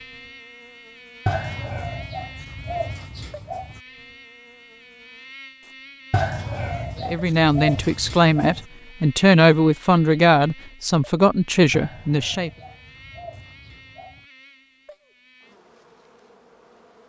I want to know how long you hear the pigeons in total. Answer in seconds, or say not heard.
8 s.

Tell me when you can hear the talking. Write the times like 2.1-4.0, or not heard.
7.0-12.5.